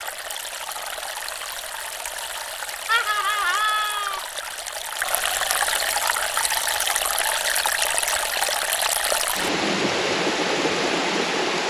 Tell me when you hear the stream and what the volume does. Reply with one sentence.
You can hear the stream from 0.0 to 11.6 s, getting louder.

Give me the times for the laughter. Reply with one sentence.
The laughter can be heard from 2.9 to 4.2 s.